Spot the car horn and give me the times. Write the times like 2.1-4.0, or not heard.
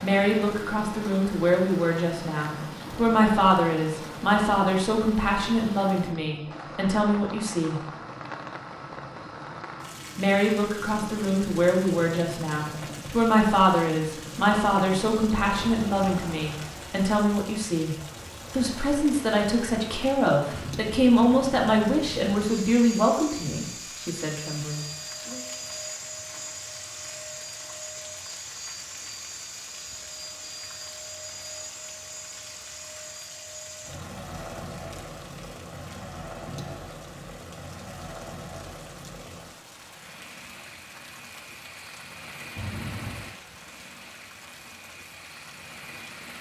42.5-43.4.